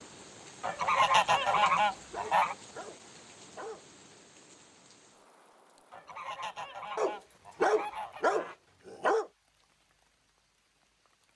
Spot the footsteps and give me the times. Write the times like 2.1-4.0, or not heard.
not heard.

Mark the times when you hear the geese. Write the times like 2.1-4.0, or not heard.
0.6-2.5, 5.9-8.6.